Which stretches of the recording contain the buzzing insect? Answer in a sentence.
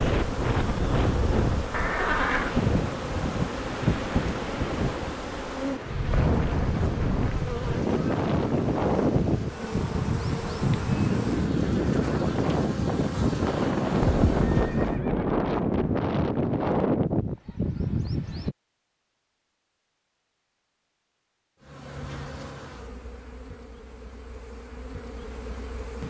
The buzzing insect can be heard from 0.0 to 15.0 s and from 21.6 to 26.0 s.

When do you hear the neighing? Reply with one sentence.
The neighing can be heard from 1.7 to 2.5 s and from 14.0 to 16.1 s.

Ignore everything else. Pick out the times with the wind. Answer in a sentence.
The wind can be heard from 0.0 to 18.6 s.